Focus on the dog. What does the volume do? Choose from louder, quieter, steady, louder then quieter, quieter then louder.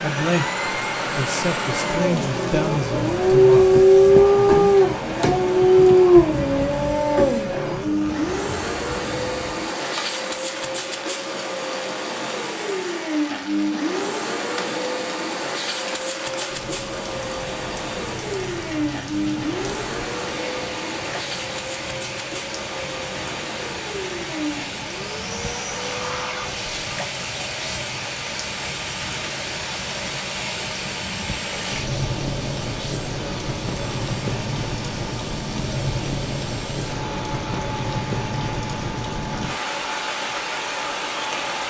louder then quieter.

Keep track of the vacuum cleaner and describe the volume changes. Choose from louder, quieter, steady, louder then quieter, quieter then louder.
quieter.